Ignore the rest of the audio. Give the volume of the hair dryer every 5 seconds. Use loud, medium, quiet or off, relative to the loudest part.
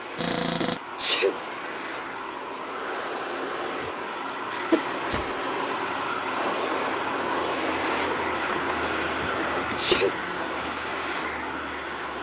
medium, loud, loud.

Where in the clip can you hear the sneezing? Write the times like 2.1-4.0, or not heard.
0.6-1.4, 4.2-5.2, 9.3-10.2.